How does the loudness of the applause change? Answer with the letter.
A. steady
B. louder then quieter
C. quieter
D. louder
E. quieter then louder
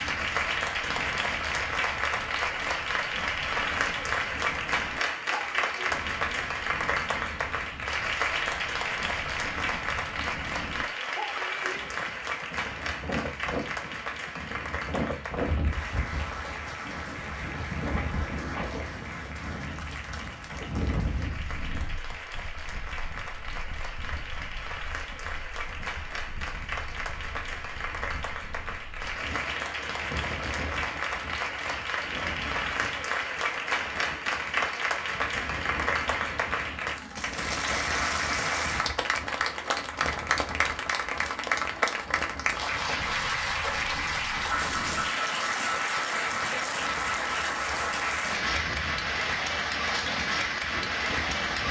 E.